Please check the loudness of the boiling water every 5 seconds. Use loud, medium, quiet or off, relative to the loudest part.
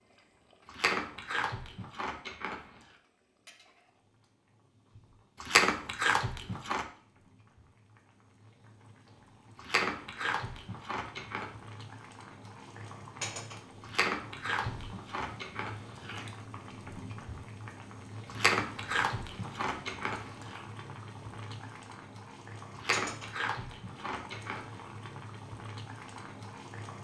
quiet, quiet, loud, loud, loud, loud.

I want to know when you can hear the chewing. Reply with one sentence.
The chewing can be heard from 0.7 to 2.6 s, from 5.4 to 6.8 s, from 9.6 to 11.4 s, from 13.8 to 16.2 s, from 18.2 to 20.6 s and from 22.7 to 24.6 s.